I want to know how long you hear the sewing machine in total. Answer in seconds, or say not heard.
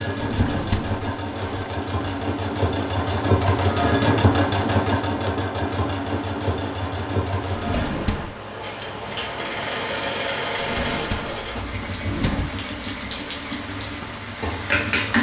15 s.